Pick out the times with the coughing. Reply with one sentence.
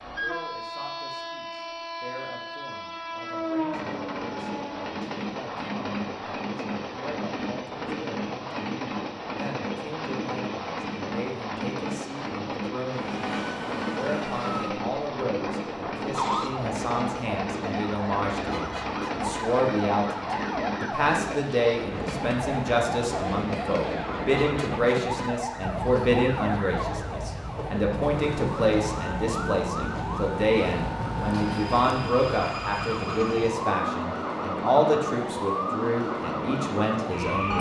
You can't hear the coughing here.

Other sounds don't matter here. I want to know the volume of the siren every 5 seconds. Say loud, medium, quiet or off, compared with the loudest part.
off, off, loud, loud, loud, loud, loud, loud.